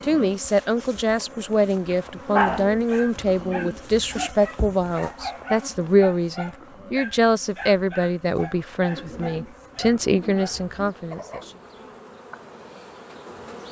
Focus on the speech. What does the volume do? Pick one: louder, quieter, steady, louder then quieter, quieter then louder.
steady.